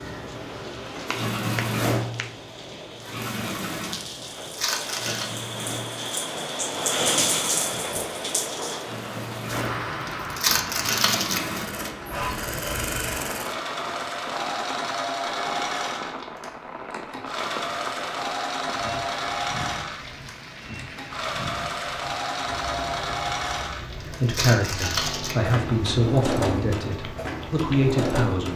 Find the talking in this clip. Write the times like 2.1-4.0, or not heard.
24.1-28.5.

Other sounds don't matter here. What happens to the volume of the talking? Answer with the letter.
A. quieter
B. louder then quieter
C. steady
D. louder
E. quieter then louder
E.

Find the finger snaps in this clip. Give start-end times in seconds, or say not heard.
1.0-2.3.